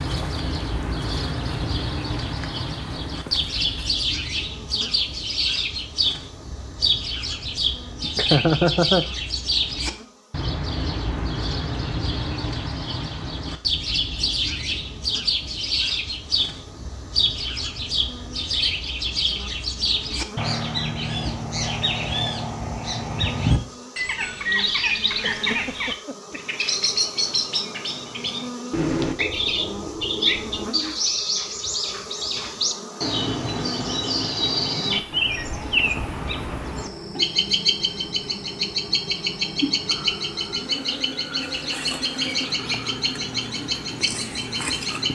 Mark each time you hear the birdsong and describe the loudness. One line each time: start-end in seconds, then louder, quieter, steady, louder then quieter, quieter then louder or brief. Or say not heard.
0.0-45.1 steady.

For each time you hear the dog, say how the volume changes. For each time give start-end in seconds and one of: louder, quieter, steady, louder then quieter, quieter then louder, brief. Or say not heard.
not heard.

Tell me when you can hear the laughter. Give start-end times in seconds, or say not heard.
8.0-9.1, 25.2-26.6.